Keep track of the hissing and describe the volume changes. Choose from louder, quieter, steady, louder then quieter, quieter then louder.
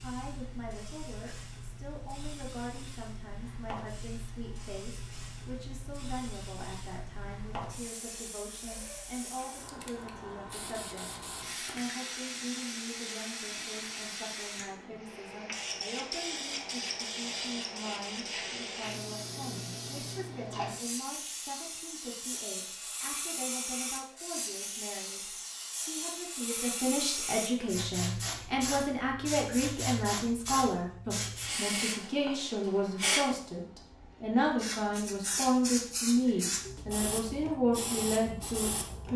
louder.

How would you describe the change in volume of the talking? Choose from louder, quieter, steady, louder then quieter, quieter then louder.
louder.